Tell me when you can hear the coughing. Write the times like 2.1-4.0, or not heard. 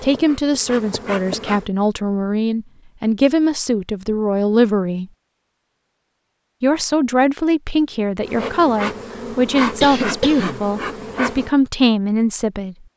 9.6-10.7.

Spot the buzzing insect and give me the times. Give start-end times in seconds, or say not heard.
0.0-1.7, 8.2-11.5.